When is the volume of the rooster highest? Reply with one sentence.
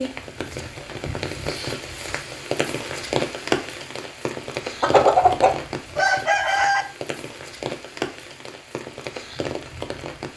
The loudest moment of the rooster is at 5 seconds.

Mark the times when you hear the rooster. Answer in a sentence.
The rooster can be heard from 4.8 to 6.8 s.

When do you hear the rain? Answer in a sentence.
The rain can be heard from 0.0 to 10.3 s.